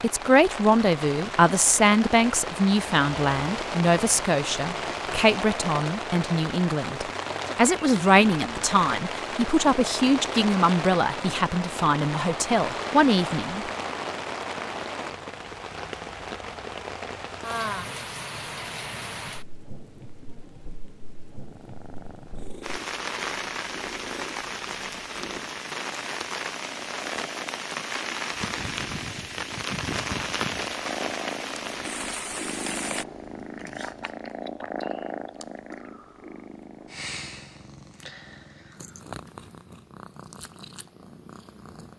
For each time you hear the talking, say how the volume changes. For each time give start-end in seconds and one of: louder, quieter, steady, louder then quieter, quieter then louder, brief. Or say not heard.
0.0-13.7 steady.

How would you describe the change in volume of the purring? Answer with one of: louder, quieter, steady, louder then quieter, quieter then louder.
louder then quieter.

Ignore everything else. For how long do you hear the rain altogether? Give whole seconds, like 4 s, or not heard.
33 s.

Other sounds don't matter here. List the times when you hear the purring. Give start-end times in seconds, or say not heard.
21.3-41.9.